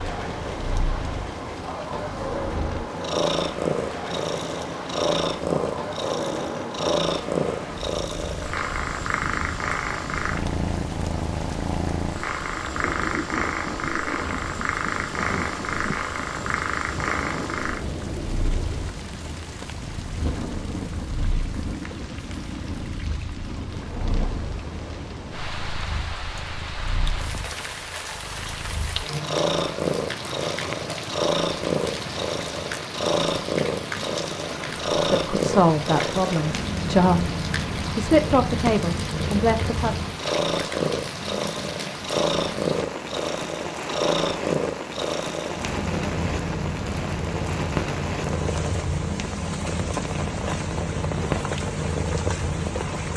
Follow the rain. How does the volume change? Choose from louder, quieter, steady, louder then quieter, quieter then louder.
steady.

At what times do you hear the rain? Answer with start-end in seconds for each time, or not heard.
0.0-53.1.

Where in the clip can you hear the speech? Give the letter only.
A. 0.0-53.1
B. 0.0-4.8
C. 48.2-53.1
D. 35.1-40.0
D.